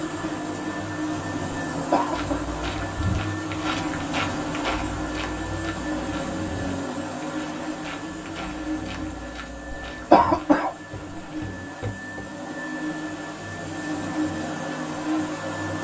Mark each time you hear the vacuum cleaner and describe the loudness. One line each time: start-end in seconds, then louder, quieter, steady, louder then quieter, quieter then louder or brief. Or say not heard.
0.0-15.8 quieter then louder.